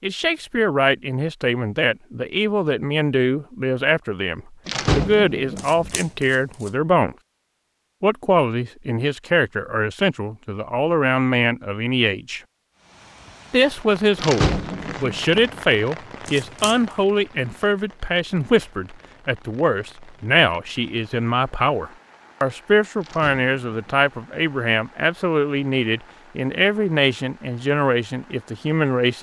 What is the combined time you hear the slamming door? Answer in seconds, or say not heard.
4 s.